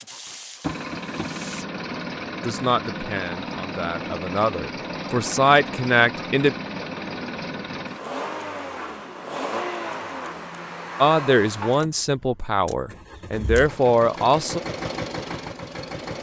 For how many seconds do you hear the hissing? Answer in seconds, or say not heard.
2 s.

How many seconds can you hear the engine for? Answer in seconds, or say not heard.
16 s.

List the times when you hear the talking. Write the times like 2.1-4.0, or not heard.
2.4-6.5, 11.0-14.6.